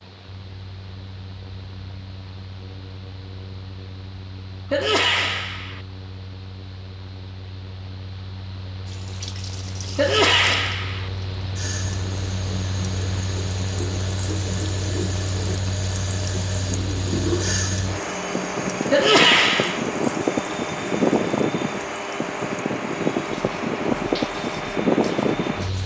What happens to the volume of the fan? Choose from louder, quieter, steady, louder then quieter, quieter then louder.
louder.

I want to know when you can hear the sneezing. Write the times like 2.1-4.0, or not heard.
4.7-5.8, 9.9-11.1, 18.9-19.9.